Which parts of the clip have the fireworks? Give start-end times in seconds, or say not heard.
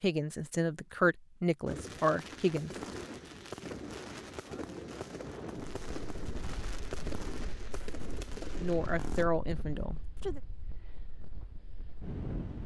1.6-9.2.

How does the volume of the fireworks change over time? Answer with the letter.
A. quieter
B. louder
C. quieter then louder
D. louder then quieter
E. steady
E.